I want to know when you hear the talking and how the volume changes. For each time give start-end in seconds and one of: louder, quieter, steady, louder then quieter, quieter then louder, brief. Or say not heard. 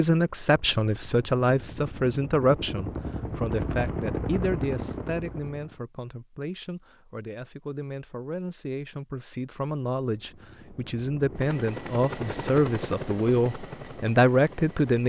0.0-15.0 quieter then louder.